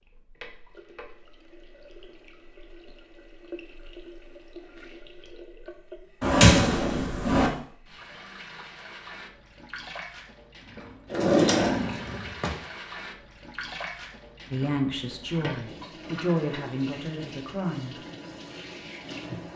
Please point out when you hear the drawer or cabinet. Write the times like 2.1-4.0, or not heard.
6.2-7.5, 11.1-12.6.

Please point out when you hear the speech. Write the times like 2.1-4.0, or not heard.
14.5-18.0.